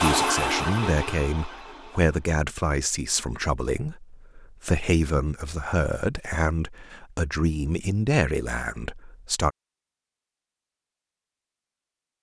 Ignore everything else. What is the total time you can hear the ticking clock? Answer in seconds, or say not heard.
not heard.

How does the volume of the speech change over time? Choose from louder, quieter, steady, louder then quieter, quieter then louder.
steady.